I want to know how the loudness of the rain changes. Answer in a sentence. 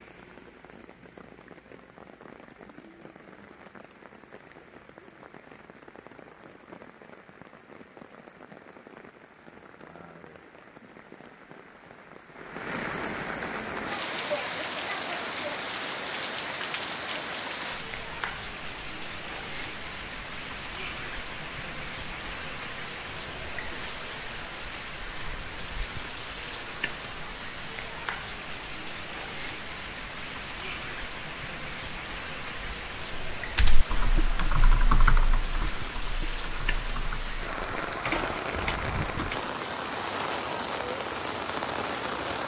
The volume of the rain goes up.